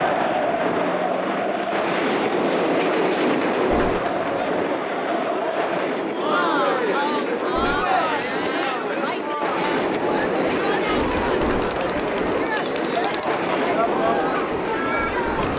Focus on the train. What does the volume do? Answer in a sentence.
The volume of the train stays about the same.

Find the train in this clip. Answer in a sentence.
The train can be heard from 0.0 to 15.5 s.